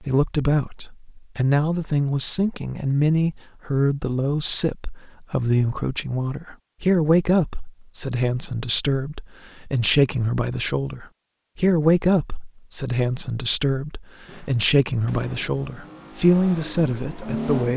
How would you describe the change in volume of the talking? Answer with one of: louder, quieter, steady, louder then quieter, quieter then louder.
steady.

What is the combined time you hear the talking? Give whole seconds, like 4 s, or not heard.
18 s.